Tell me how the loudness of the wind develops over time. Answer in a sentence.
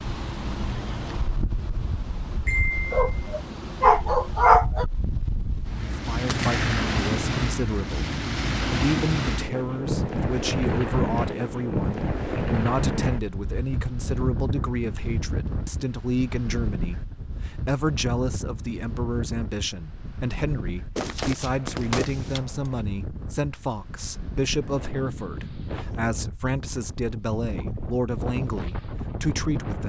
The loudness of the wind goes up, then down.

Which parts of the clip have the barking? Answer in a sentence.
The barking can be heard from 2.5 to 4.8 s.